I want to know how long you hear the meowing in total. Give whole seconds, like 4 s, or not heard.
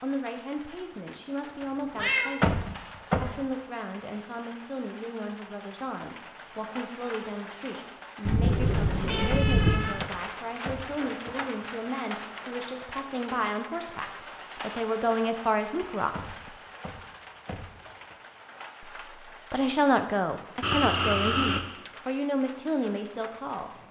4 s.